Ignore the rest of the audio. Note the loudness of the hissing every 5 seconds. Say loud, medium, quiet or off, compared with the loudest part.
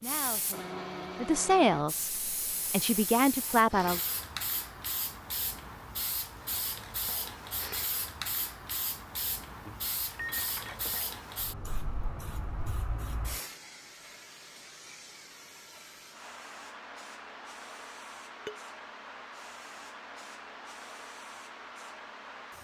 loud, loud, loud, medium, medium.